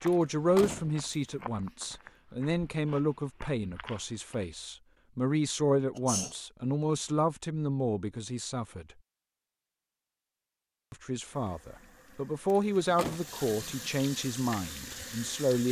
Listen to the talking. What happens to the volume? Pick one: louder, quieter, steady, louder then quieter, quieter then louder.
steady.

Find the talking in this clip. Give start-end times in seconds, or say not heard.
0.0-8.8, 10.9-15.6.